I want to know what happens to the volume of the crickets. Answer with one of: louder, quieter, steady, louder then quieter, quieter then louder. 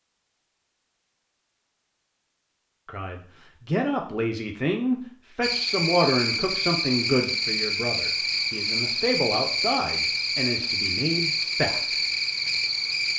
steady.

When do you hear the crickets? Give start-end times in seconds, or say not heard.
5.4-13.1.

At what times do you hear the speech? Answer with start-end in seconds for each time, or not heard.
2.9-11.9.